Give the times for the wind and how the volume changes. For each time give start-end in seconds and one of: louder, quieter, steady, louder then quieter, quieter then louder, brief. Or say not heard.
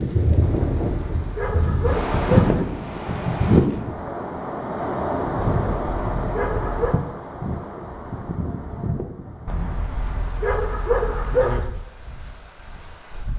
0.0-13.3 quieter.